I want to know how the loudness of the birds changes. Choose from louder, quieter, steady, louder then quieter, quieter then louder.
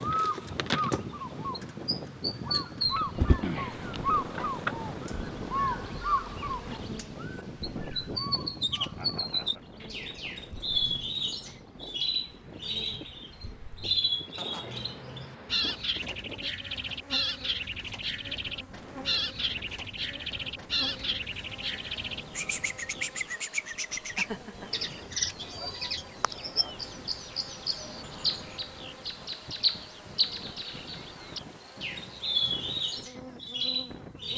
steady.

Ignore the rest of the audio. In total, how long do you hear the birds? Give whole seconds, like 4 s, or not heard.
34 s.